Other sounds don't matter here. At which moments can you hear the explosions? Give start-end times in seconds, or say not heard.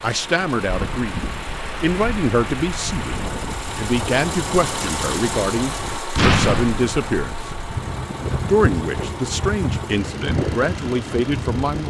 6.2-7.2.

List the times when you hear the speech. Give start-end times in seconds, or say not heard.
0.0-7.5, 8.4-11.8.